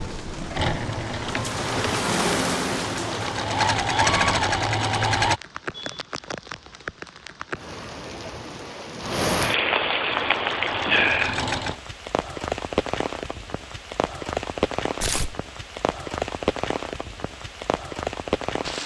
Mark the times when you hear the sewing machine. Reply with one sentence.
You can hear the sewing machine from 0.0 to 5.4 s and from 10.1 to 11.8 s.